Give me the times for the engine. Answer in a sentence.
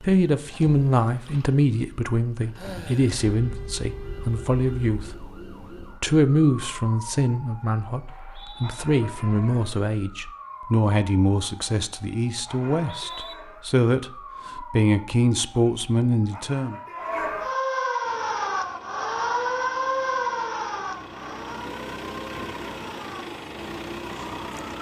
The engine can be heard from 18.0 to 24.7 s.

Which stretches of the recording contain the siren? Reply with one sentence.
You can hear the siren from 0.0 to 24.7 s.